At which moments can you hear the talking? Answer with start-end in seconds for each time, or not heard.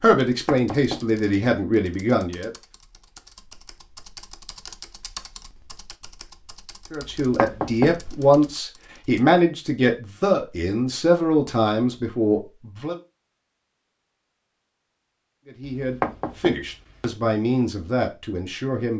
0.0-2.5, 6.9-12.9, 15.4-18.9.